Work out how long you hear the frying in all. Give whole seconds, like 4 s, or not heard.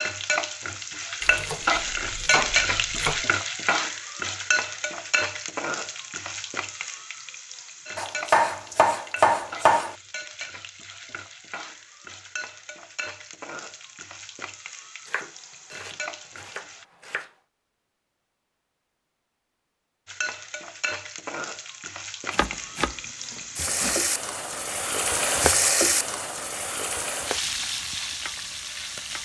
26 s.